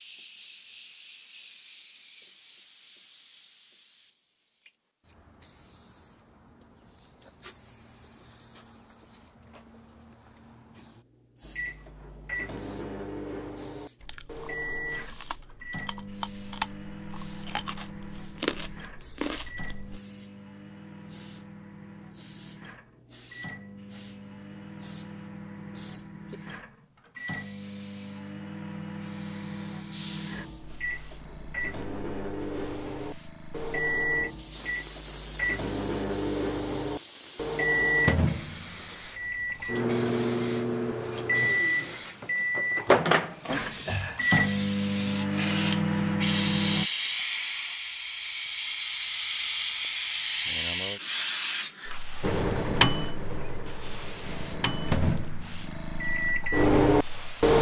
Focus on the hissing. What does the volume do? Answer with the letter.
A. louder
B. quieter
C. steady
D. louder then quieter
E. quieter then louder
A.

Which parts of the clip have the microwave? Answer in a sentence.
The microwave can be heard from 11.4 to 46.9 s and from 52.2 to 57.5 s.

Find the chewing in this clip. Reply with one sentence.
You can hear the chewing from 14.0 to 20.0 s.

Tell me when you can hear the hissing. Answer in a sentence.
The hissing can be heard from 0.0 to 57.5 s.